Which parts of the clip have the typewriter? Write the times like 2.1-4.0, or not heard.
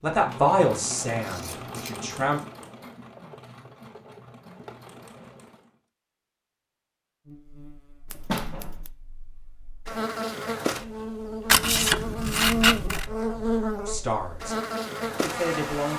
not heard.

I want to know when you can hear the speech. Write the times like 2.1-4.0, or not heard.
0.0-2.4, 13.8-15.9.